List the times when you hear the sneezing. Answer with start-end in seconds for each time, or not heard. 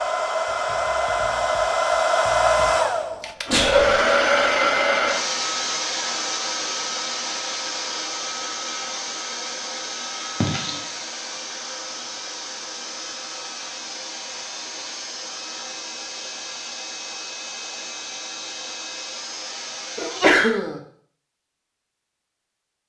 3.5-4.0, 10.4-10.8, 19.9-20.8.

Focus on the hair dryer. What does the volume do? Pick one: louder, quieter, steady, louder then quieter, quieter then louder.
quieter.